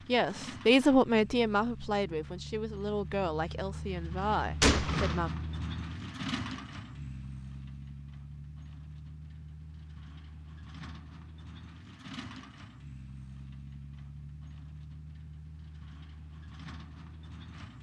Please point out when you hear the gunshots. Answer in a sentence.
You can hear the gunshots from 4.6 to 5.2 s.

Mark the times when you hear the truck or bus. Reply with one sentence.
You can hear the truck or bus from 0.0 to 17.7 s.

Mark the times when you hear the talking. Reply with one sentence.
You can hear the talking from 0.1 to 5.3 s.